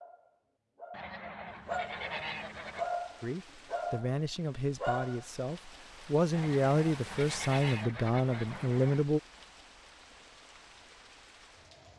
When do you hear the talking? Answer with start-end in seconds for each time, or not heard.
3.2-9.2.